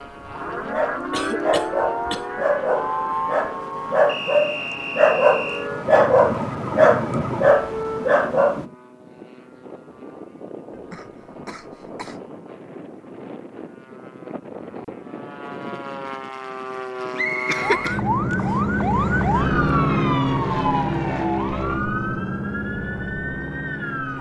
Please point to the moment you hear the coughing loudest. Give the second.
18 s.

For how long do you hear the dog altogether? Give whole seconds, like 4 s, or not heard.
8 s.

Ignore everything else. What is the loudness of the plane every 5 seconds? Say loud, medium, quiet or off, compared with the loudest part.
quiet, quiet, quiet, loud, loud.